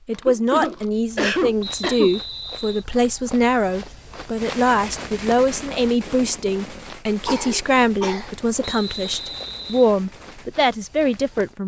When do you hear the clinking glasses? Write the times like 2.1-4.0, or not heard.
not heard.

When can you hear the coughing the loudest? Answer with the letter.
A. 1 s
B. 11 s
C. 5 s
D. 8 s
A.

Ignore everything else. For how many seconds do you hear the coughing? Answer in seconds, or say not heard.
3 s.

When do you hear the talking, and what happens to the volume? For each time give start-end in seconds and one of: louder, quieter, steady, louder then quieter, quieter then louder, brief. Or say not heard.
0.1-11.6 steady.